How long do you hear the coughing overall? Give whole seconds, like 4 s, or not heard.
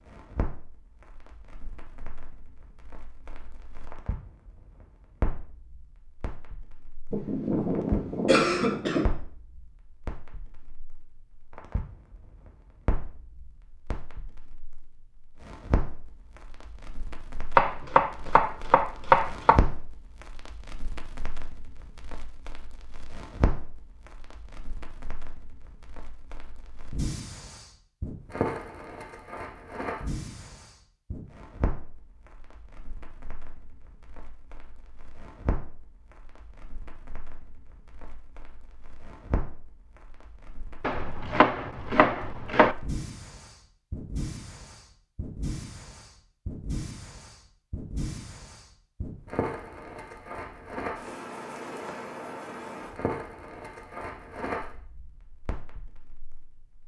2 s.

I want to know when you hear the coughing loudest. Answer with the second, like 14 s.
8 s.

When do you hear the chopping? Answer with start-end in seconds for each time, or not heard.
17.6-19.6, 40.8-42.8.